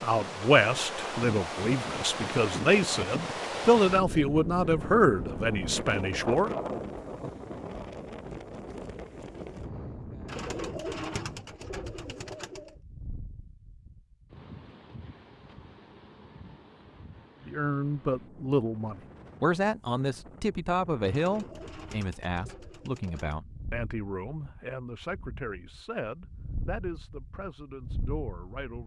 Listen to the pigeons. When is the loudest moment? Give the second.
11 s.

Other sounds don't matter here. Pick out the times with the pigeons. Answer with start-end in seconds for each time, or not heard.
10.2-12.8, 21.0-23.4.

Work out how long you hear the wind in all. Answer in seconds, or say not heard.
29 s.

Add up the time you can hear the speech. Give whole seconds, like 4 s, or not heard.
18 s.